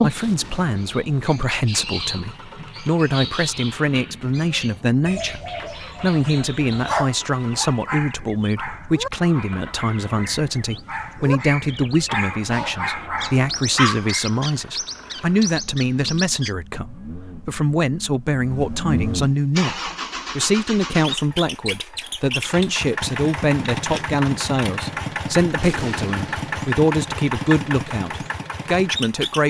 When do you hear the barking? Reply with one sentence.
The barking can be heard from 6.8 to 14.3 s.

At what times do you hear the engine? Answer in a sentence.
You can hear the engine from 0.0 to 29.4 s.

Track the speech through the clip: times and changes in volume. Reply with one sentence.
The speech can be heard from 0.0 to 29.4 s, at a steady volume.